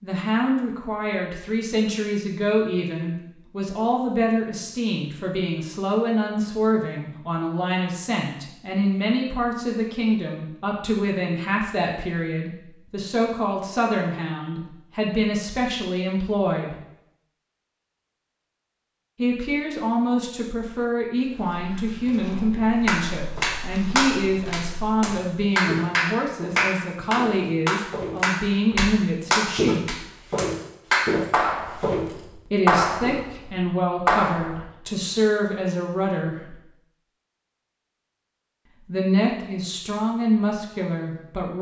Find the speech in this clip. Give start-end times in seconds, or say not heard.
0.0-16.8, 19.1-30.1, 32.5-36.5, 38.9-41.5.